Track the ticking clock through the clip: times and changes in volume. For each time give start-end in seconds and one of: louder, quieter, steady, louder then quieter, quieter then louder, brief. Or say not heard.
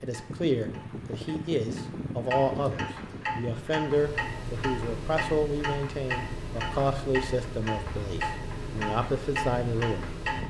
0.0-10.4 louder.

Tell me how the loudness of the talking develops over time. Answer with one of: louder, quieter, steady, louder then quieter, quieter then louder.
steady.